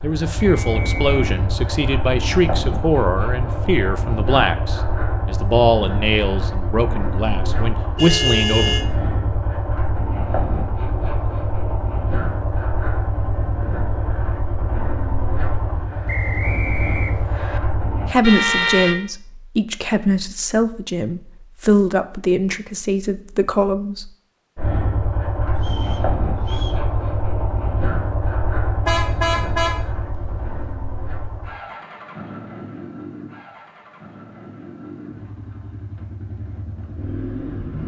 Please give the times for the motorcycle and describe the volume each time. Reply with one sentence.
The motorcycle can be heard from 0.0 to 18.1 s, at a steady volume; and from 24.6 to 37.8 s, getting quieter.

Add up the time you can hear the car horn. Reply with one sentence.
You can hear the car horn for 3 seconds altogether.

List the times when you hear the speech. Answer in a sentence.
You can hear the speech from 0.0 to 8.8 s and from 18.1 to 24.1 s.